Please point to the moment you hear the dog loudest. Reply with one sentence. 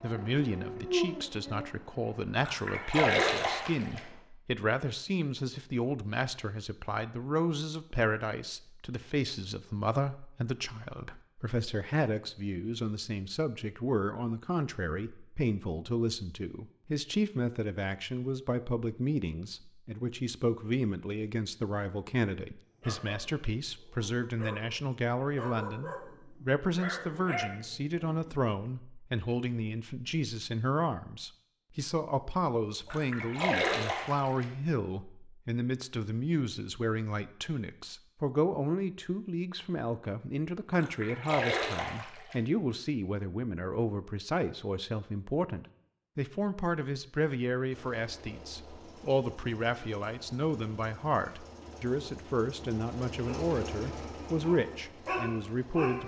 The loudest moment of the dog is at 1 second.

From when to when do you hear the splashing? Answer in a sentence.
The splashing can be heard from 2.4 to 4.0 s, from 32.9 to 34.5 s and from 40.7 to 42.4 s.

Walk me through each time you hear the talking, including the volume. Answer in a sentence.
The talking can be heard from 0.0 to 56.0 s, at a steady volume.